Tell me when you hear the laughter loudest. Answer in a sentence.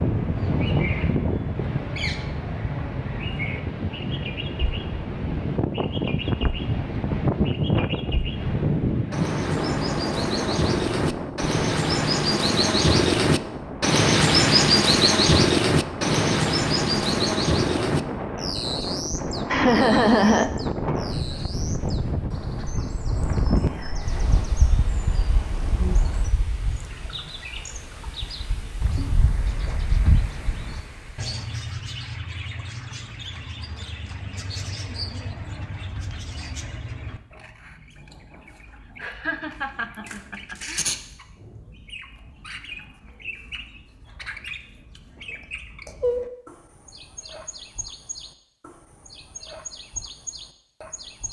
The volume of the laughter peaks at 20 seconds.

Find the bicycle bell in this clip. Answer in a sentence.
The bicycle bell can't be heard in this clip.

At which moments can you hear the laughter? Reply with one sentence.
You can hear the laughter from 19.5 to 20.9 s and from 39.0 to 40.8 s.